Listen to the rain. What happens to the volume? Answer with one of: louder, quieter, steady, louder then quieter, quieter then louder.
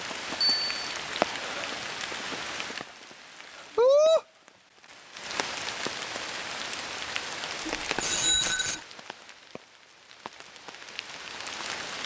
louder then quieter.